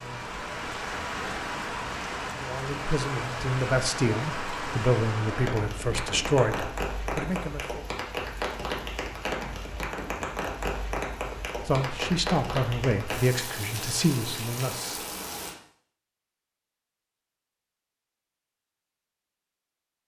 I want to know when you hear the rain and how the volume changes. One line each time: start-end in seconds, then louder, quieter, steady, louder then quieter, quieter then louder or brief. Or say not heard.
0.0-15.6 steady.